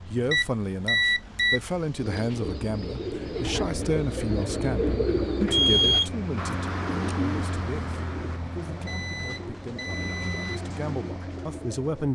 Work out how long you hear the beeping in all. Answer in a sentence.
The beeping can be heard for 4 seconds in total.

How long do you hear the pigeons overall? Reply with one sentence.
You can hear the pigeons for 10 seconds altogether.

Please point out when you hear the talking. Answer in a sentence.
You can hear the talking from 0.1 to 12.1 s.